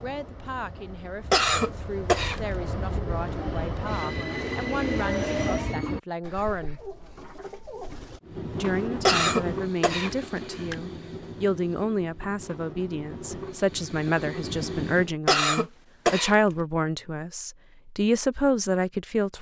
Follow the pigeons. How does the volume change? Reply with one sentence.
The volume of the pigeons goes up, then down.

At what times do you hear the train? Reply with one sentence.
The train can be heard from 0.0 to 5.8 s and from 8.2 to 15.2 s.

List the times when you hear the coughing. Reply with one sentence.
The coughing can be heard from 1.3 to 2.4 s, from 9.1 to 10.8 s and from 15.2 to 16.4 s.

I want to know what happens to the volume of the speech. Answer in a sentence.
The volume of the speech goes up.